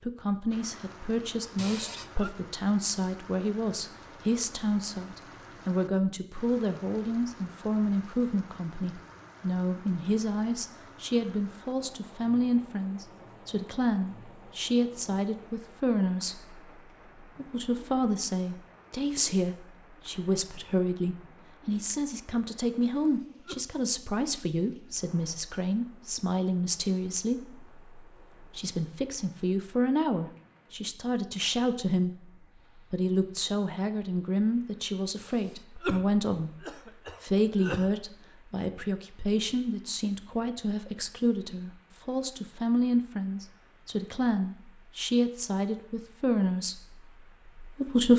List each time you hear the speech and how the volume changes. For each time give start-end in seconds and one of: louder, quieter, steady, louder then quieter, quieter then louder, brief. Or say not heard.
0.0-48.1 steady.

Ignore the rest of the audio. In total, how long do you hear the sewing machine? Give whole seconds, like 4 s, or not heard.
not heard.